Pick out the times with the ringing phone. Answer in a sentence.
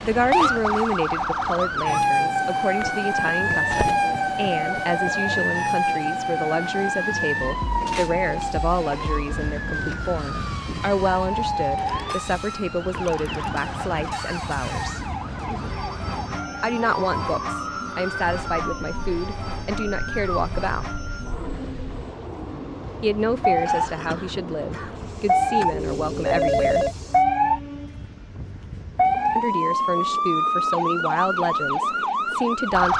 The ringing phone can be heard from 3.1 to 5.5 s, from 11.8 to 12.2 s, from 12.9 to 13.6 s and from 25.7 to 26.9 s.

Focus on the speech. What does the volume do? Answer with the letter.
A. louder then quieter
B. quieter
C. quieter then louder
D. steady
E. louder
D.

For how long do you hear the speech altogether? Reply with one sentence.
You can hear the speech for 27 seconds altogether.